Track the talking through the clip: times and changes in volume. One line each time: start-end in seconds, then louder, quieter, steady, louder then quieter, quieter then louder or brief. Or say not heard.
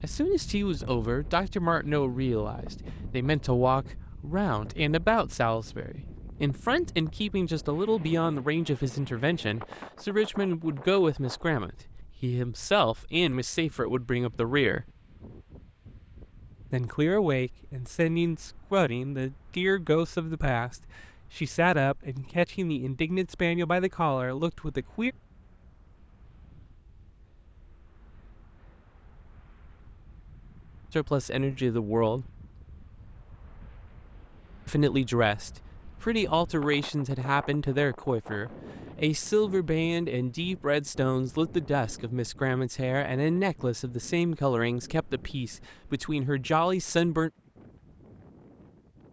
0.0-14.8 steady
16.7-25.1 steady
30.9-32.3 brief
34.6-47.3 steady.